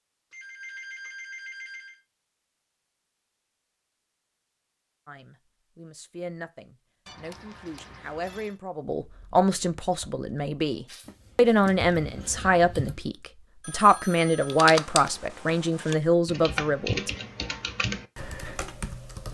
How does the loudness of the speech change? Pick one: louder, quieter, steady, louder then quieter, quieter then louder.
louder.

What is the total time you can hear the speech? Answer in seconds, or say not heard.
12 s.